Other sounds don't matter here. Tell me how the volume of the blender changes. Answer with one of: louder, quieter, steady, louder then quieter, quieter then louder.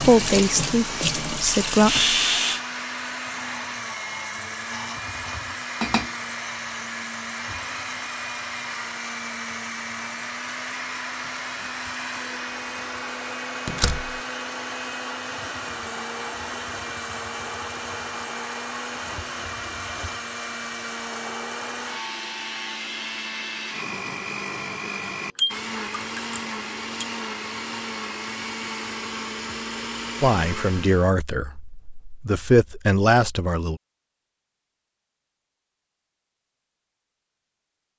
steady.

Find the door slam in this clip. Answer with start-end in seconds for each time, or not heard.
13.7-14.2.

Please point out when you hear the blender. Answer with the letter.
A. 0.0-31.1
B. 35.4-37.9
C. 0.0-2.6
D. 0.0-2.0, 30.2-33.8
A.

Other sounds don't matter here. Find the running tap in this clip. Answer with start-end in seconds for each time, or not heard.
0.0-2.6.